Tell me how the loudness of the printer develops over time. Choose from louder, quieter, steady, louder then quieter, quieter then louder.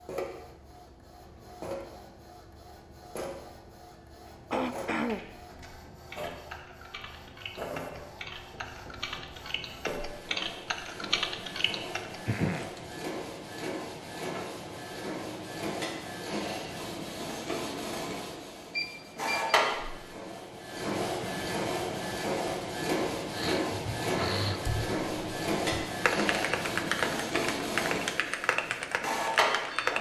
louder.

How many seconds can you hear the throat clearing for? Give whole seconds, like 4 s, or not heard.
3 s.